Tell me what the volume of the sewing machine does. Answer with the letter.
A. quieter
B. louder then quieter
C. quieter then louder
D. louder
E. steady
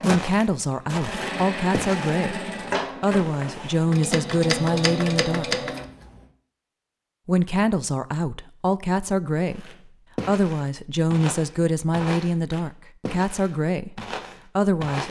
D.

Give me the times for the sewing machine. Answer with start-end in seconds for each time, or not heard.
0.0-6.2.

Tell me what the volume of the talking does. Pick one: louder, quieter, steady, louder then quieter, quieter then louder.
steady.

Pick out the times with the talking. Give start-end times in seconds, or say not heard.
0.0-5.7, 7.2-15.0.